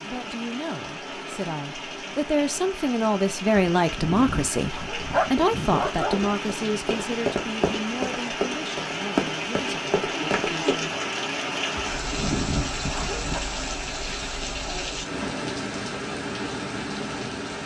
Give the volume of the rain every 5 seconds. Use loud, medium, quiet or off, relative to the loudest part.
medium, loud, loud, loud.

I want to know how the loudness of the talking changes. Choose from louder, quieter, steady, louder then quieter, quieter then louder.
louder then quieter.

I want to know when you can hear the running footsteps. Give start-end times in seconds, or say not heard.
5.3-10.8.